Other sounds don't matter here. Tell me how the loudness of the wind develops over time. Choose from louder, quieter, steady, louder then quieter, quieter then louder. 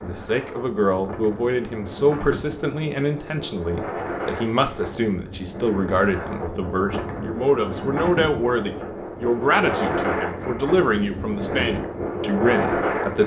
louder.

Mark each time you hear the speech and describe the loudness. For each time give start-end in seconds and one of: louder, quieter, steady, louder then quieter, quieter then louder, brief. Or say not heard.
0.0-13.2 steady.